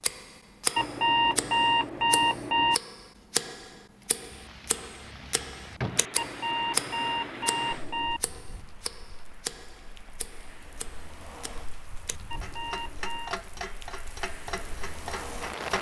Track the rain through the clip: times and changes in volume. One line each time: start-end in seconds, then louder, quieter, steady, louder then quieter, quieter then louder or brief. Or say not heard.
4.0-15.7 quieter then louder.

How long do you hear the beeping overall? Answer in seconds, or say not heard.
5 s.